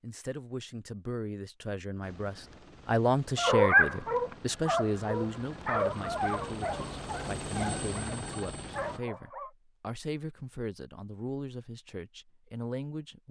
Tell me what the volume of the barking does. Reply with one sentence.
The volume of the barking goes down.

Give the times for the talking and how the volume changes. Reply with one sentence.
You can hear the talking from 0.0 to 13.2 s, getting louder then quieter.